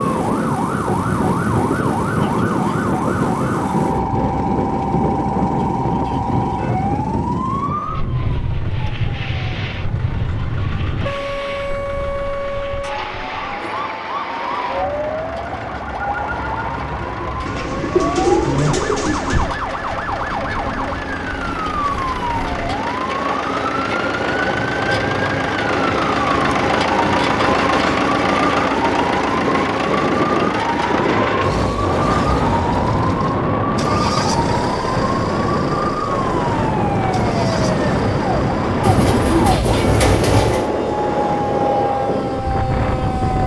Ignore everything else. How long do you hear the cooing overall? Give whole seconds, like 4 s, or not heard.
4 s.